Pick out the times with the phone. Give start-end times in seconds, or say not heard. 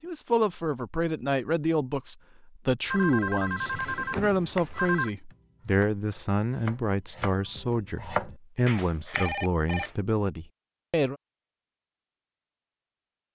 2.9-5.1, 8.8-9.9.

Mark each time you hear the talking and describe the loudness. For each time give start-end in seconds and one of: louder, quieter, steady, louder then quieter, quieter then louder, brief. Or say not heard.
0.0-11.2 steady.